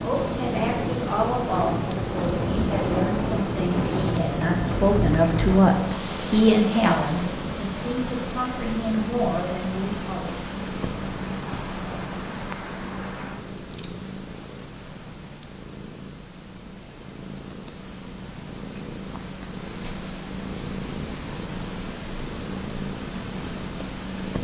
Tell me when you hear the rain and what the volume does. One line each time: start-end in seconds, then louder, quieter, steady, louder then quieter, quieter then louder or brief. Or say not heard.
0.0-13.4 quieter.